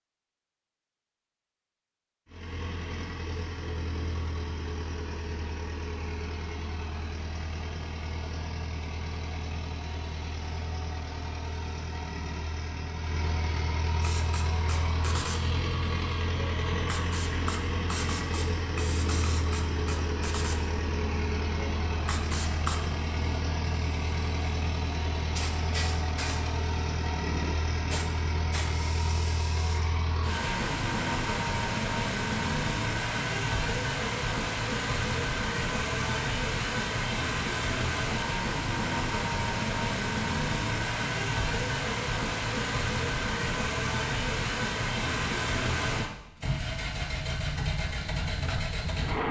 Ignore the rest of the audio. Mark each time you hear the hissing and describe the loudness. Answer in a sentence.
You can hear the hissing from 14.0 to 29.8 s, at a steady volume.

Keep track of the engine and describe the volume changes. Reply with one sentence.
The loudness of the engine goes up.